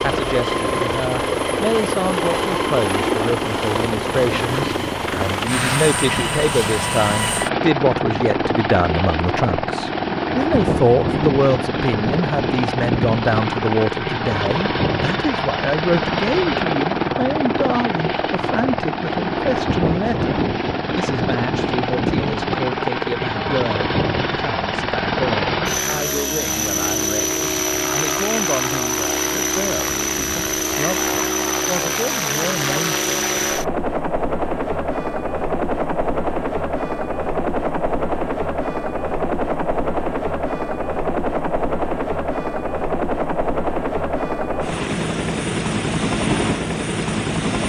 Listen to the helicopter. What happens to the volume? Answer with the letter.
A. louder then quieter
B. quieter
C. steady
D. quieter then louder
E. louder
C.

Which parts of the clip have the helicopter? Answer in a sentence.
You can hear the helicopter from 0.0 to 47.6 s.